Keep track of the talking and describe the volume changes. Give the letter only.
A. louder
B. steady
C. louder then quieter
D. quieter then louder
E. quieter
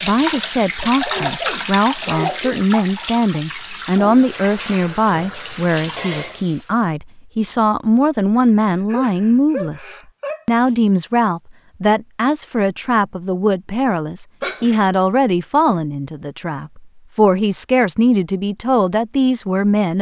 B.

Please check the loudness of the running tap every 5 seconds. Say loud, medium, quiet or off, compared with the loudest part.
loud, loud, off, off.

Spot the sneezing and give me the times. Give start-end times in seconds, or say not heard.
1.1-2.6, 8.3-10.8, 14.4-14.8.